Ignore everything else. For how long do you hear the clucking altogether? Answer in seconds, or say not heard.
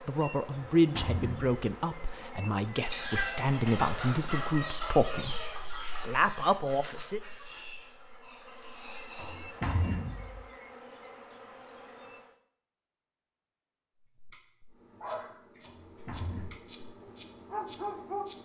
7 s.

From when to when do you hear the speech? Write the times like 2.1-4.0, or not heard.
0.1-5.4, 6.0-7.2.